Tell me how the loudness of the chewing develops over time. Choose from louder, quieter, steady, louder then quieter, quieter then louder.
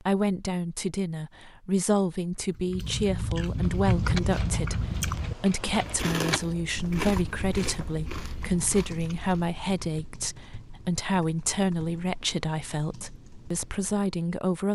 quieter.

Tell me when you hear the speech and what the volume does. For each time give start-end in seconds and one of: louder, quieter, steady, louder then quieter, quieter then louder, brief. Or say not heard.
0.0-14.7 steady.